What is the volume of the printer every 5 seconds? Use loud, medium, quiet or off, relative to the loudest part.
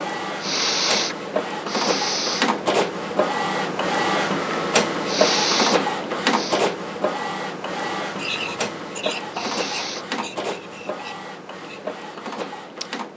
loud, loud, medium.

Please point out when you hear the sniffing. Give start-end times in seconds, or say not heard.
0.4-2.5, 5.0-6.7, 9.3-10.1.